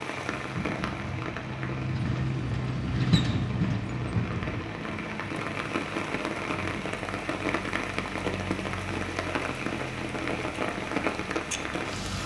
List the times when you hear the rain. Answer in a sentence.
The rain can be heard from 0.0 to 12.2 s.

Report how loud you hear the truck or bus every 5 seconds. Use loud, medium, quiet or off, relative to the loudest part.
loud, medium, medium.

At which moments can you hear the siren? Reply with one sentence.
The siren can't be heard in this clip.